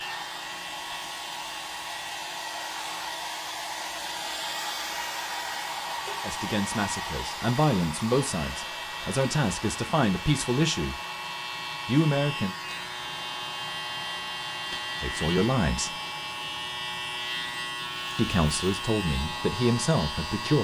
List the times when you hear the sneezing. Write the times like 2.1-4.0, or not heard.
not heard.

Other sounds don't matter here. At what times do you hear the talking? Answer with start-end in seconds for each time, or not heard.
6.2-10.9, 11.8-12.6, 15.0-15.9, 18.1-20.5.